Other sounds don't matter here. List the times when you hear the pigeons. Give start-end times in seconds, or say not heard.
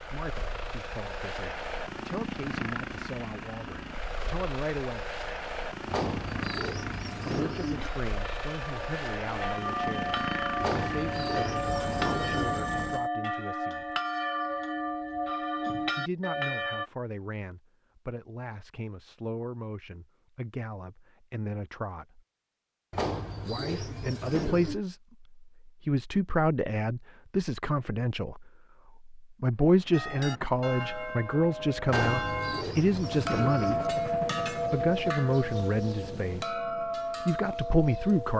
5.8-7.9, 10.6-12.6, 22.9-24.8, 31.9-33.9.